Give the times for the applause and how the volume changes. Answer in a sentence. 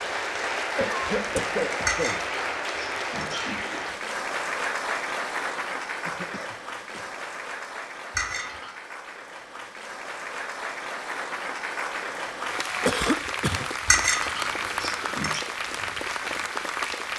The applause can be heard from 0.0 to 17.1 s, getting quieter then louder.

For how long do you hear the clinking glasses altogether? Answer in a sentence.
The clinking glasses can be heard for 4 seconds in total.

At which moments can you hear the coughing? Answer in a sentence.
The coughing can be heard from 0.8 to 2.2 s, from 6.0 to 7.0 s and from 12.8 to 13.7 s.